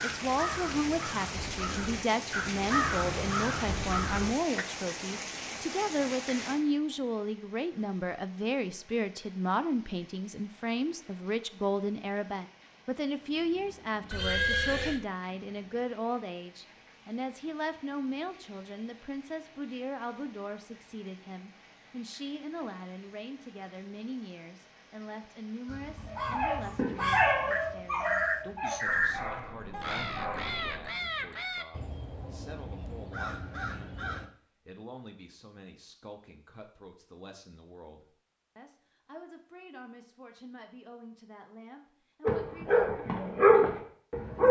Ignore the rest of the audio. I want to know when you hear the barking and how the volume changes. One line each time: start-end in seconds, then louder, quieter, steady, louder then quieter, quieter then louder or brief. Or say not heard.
26.1-30.9 quieter
42.2-44.4 brief.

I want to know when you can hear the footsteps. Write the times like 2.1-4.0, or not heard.
not heard.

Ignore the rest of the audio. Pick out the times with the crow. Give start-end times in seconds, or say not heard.
0.0-4.7, 25.6-34.3.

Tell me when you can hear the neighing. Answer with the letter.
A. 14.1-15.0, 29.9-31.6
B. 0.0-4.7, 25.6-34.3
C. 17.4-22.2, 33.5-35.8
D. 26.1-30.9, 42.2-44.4
A.